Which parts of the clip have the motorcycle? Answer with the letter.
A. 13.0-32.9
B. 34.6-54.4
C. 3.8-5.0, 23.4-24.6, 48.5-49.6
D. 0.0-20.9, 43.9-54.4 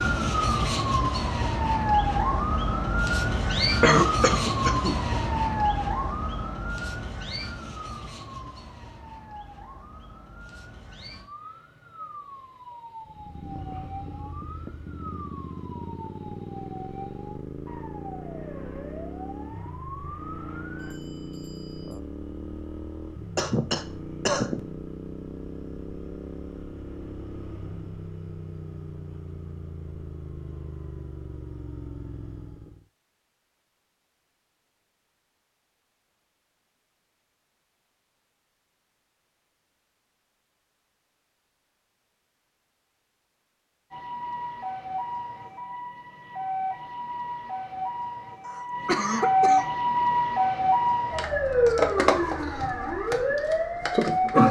A.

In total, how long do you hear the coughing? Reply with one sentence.
You can hear the coughing for 4 seconds altogether.